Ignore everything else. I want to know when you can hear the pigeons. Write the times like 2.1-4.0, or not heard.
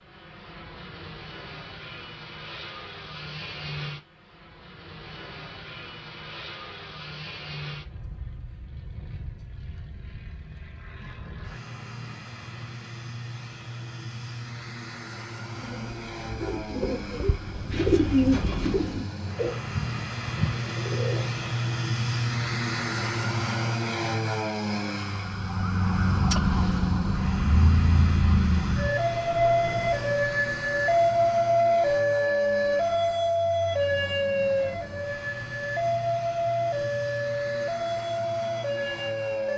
15.5-21.4.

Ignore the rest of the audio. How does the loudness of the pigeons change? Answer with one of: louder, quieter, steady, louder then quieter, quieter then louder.
louder then quieter.